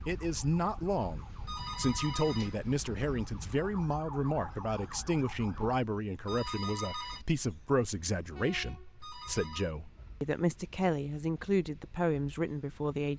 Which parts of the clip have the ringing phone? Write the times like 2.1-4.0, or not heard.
1.4-2.5, 6.2-7.2, 9.0-9.8.